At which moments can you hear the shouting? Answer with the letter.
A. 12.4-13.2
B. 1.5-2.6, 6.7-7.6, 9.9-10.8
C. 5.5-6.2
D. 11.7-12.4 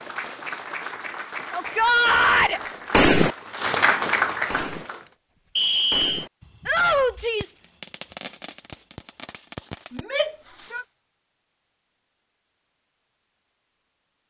B.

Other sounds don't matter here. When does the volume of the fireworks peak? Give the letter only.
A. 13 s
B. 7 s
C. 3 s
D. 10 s
C.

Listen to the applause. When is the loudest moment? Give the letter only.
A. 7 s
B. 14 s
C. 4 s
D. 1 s
C.